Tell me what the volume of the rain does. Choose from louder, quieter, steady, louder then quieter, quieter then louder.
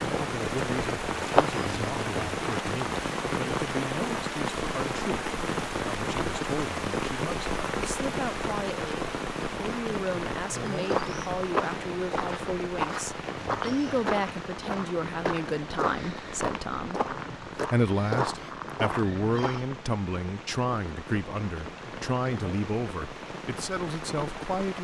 quieter.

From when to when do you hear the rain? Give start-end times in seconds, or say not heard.
0.0-24.7.